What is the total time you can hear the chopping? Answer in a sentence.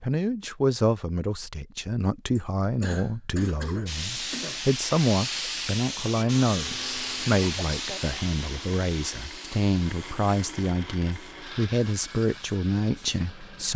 The chopping can't be heard in this clip.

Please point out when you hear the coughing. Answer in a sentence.
You can hear the coughing from 2.4 to 4.6 s and from 7.4 to 8.1 s.